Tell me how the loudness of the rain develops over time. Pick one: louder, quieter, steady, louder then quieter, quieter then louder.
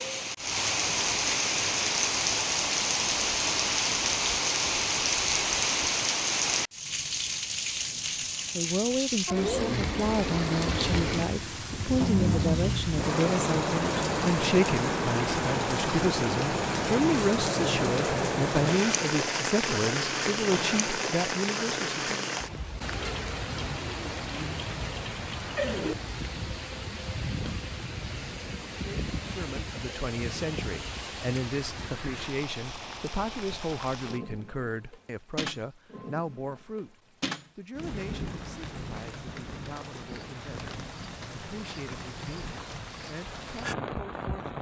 quieter.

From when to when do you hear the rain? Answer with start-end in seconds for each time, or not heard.
0.0-44.5.